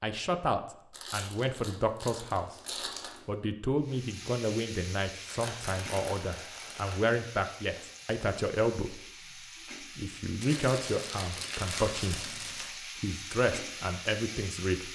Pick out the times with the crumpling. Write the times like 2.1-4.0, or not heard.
0.9-3.3, 5.2-7.0, 10.4-12.8.